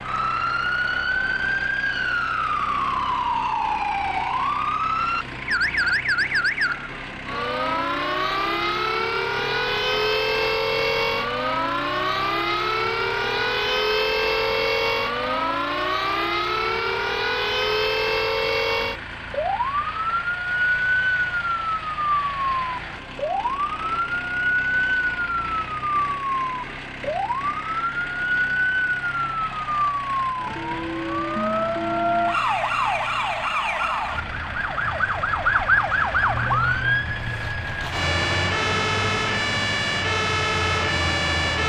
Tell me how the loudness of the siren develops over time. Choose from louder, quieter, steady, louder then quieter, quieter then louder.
steady.